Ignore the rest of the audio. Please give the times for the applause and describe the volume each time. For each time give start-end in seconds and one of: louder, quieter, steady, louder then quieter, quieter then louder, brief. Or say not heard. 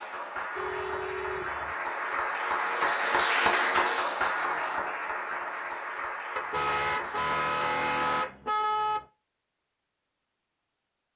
0.0-8.3 louder then quieter.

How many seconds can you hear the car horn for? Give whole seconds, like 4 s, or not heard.
4 s.